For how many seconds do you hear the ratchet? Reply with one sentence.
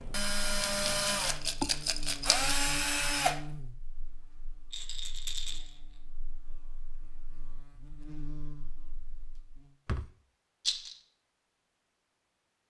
You can't hear the ratchet here.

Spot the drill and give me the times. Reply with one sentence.
The drill can be heard from 0.0 to 3.4 s.